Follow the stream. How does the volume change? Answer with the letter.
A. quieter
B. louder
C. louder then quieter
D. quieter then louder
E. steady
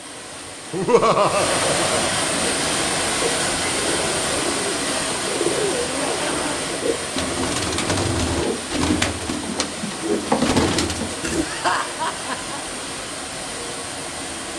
A.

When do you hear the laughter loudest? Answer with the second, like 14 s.
1 s.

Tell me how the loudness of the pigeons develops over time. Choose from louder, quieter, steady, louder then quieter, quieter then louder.
louder.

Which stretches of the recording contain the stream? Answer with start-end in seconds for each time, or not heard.
0.0-14.5.